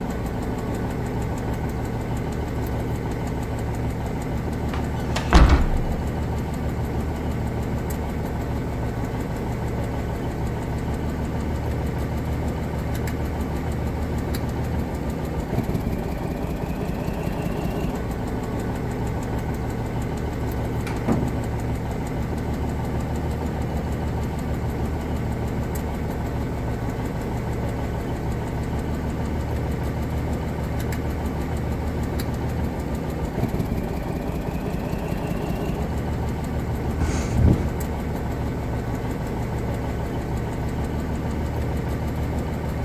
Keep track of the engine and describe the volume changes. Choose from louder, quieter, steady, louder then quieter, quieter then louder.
steady.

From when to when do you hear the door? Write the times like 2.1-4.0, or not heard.
4.7-5.8, 20.7-21.4, 37.0-37.6.